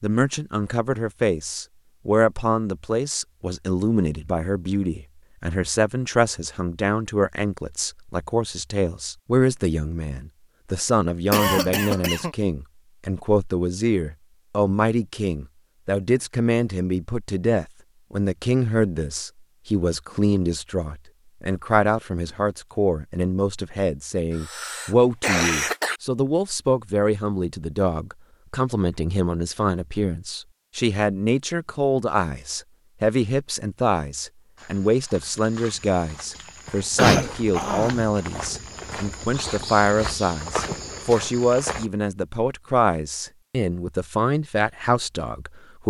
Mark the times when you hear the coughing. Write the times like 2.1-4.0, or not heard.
11.3-12.3, 24.4-26.0, 37.0-38.1.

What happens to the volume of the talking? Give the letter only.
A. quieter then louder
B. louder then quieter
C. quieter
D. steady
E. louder
D.